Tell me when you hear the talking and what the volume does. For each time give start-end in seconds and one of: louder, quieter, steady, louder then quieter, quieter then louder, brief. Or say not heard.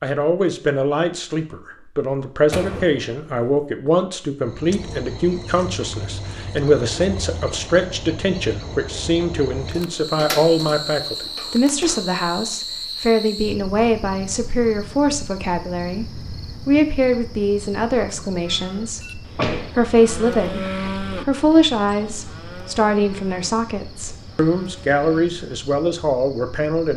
0.0-26.9 steady.